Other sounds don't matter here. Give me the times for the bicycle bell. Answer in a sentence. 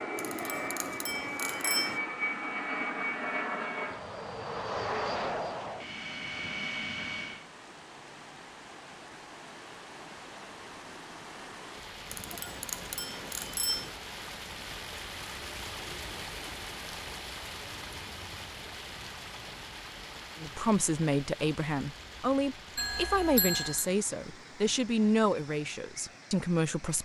The bicycle bell can be heard from 0.1 to 2.0 s, from 12.1 to 13.9 s and from 22.8 to 23.9 s.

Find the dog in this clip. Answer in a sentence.
You can't hear the dog here.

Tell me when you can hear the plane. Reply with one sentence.
You can hear the plane from 0.0 to 7.5 s.